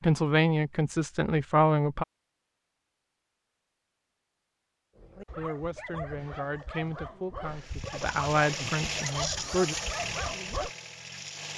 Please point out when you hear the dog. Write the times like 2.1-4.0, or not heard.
5.0-10.7.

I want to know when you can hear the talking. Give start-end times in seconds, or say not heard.
0.0-2.0, 5.3-9.8.